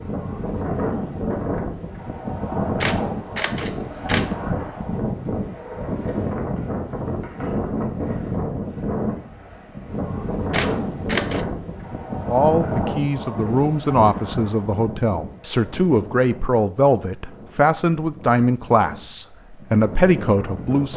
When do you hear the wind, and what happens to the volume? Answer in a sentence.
You can hear the wind from 0.0 to 20.9 s, getting quieter.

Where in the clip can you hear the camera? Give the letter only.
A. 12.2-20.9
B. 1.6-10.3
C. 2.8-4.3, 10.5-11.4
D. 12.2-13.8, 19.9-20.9
C.